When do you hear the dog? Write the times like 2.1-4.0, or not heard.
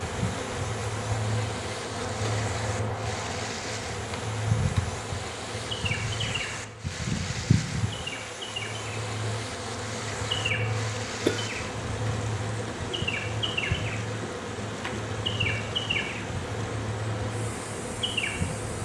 not heard.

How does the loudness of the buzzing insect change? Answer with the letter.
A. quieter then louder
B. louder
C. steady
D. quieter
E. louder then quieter
C.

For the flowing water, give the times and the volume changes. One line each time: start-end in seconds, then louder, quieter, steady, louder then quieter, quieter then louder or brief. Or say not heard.
0.0-18.8 steady.